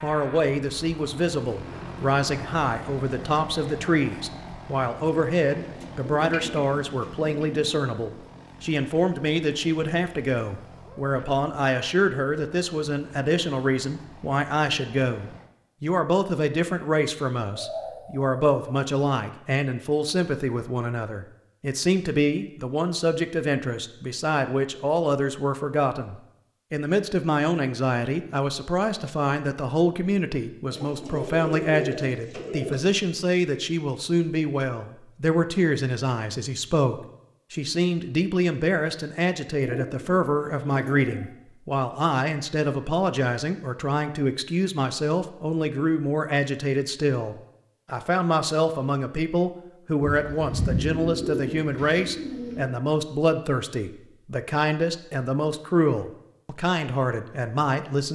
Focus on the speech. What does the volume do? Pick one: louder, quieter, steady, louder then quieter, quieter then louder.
steady.